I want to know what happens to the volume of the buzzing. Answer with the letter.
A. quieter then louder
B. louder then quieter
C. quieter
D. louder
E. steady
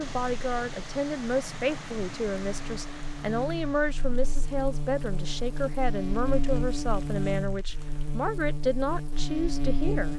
D.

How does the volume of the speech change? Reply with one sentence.
The loudness of the speech stays about the same.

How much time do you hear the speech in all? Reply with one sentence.
You can hear the speech for 10 seconds altogether.